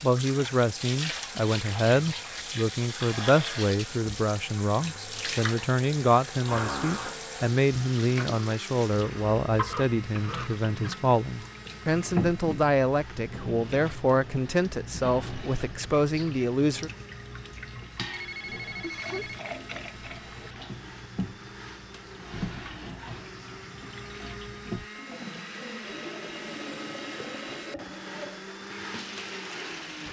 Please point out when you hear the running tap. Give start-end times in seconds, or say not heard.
0.0-30.0.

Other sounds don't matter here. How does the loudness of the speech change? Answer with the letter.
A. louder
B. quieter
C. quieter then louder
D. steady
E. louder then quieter
D.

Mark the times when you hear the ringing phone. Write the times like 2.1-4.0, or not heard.
18.1-19.4.